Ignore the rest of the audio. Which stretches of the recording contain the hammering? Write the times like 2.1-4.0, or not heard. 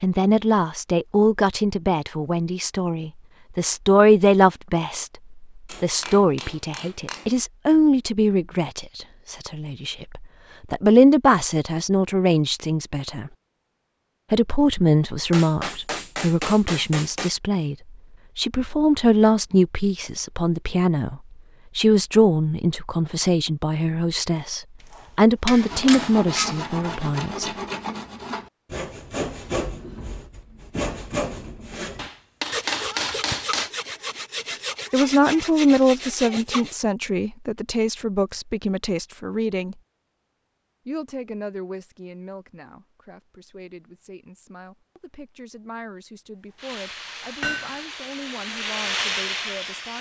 5.7-7.5, 15.3-17.3, 24.9-26.6, 31.9-33.7, 47.4-47.9.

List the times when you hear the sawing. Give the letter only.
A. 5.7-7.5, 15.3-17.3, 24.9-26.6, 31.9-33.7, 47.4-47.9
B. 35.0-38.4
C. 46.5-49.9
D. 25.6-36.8
D.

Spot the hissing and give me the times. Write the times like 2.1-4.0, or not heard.
46.5-49.9.